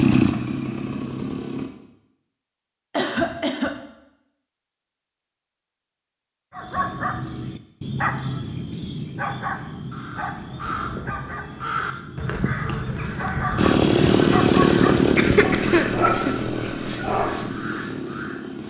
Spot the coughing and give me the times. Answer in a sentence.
You can hear the coughing from 2.9 to 3.8 s and from 15.2 to 16.8 s.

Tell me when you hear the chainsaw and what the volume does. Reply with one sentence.
You can hear the chainsaw briefly from 0.0 to 1.7 s; and from 13.6 to 18.6 s, getting quieter.